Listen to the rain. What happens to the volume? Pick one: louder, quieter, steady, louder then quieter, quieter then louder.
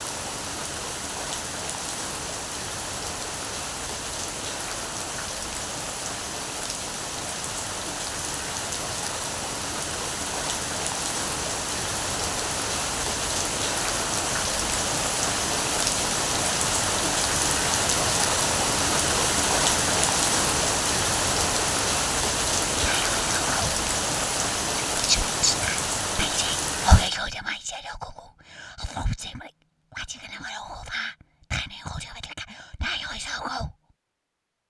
louder.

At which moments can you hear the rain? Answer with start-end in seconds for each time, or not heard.
0.0-27.1.